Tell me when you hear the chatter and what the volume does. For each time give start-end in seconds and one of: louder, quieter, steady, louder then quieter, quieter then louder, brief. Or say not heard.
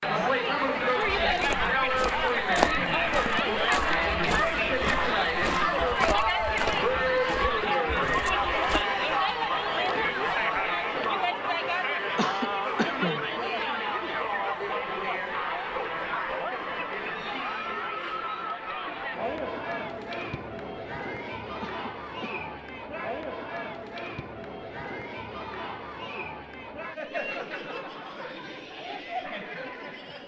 0.0-30.2 quieter.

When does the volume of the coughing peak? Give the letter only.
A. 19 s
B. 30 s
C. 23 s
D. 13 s
D.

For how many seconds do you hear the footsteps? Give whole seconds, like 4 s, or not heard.
8 s.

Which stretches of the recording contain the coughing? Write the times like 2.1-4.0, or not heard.
12.2-13.3, 21.6-22.4.